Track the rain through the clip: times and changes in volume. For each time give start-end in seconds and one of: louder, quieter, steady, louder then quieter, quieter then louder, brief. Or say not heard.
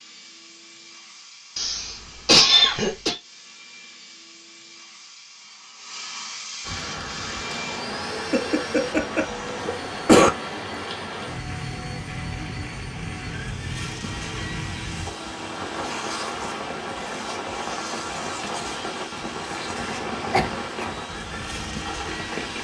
6.6-22.5 steady.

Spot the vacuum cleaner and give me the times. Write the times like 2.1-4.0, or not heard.
0.0-22.5.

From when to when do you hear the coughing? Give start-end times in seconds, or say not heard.
1.6-3.1, 8.3-10.3, 20.3-20.9.